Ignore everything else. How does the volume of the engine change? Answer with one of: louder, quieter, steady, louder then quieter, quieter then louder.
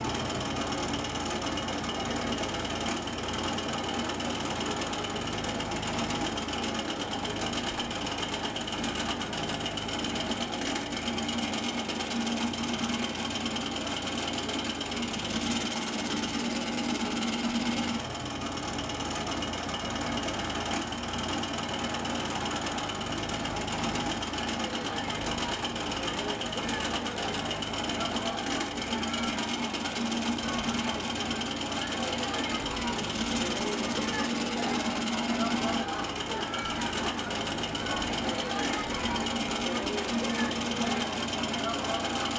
steady.